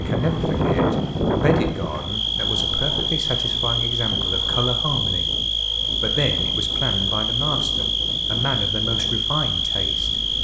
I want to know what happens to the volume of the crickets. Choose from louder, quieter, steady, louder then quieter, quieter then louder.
louder.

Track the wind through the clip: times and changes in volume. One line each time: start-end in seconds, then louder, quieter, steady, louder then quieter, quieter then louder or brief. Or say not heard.
0.0-10.3 quieter.